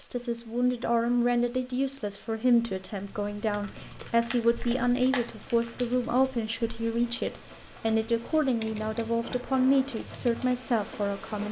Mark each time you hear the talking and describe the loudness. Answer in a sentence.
You can hear the talking from 0.0 to 11.4 s, at a steady volume.